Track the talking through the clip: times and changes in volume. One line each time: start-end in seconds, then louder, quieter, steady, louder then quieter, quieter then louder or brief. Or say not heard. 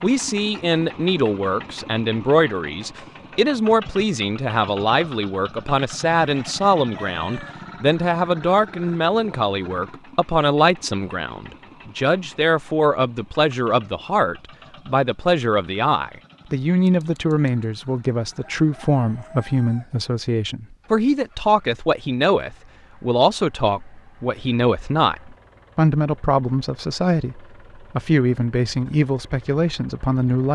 0.0-30.5 steady.